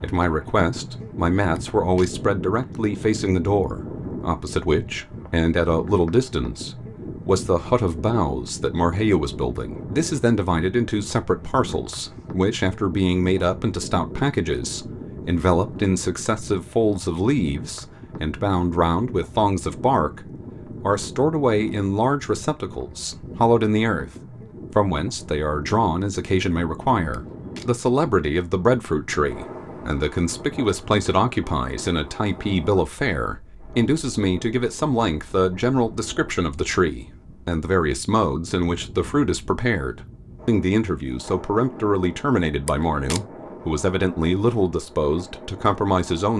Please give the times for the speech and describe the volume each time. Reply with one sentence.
You can hear the speech from 0.0 to 24.1 s, at a steady volume; and from 24.7 to 46.3 s, at a steady volume.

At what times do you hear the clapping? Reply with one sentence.
The clapping can't be heard in this clip.